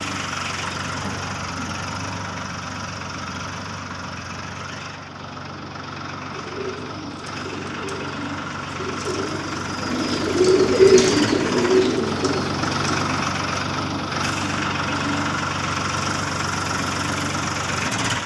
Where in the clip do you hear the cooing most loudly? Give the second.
11 s.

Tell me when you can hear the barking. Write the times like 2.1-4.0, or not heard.
not heard.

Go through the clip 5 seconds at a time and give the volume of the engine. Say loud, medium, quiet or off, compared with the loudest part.
medium, medium, loud, loud.